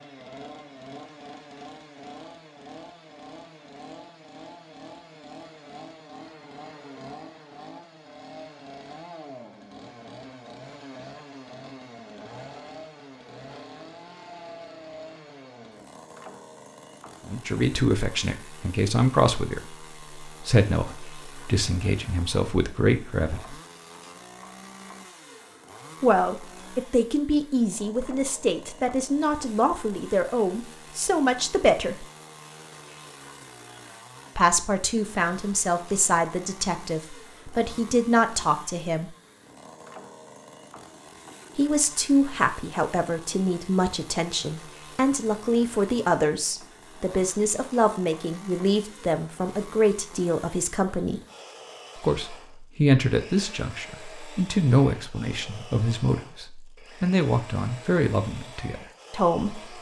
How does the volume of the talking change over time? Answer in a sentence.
The volume of the talking stays about the same.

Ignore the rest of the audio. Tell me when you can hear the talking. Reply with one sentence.
You can hear the talking from 17.2 to 23.6 s, from 26.0 to 32.0 s, from 34.4 to 39.1 s, from 41.5 to 51.2 s and from 52.0 to 59.7 s.